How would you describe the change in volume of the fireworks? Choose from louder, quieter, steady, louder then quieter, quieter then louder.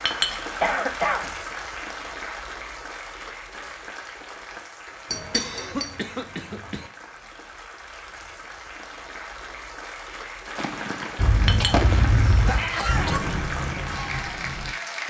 louder then quieter.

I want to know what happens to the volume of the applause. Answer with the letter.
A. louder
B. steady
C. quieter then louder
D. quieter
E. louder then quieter
C.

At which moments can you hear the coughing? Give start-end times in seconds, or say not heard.
0.6-1.3, 5.1-6.9, 11.2-13.2.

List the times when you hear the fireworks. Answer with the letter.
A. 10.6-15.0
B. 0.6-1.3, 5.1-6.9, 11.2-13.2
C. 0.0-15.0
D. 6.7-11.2
A.